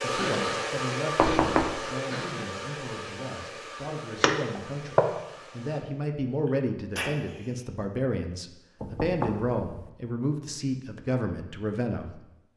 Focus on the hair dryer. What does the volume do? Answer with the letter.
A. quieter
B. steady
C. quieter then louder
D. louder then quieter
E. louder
A.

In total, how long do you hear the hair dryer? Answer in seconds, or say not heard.
6 s.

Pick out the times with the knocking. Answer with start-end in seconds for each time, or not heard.
1.1-1.8, 4.2-5.0, 8.8-9.9.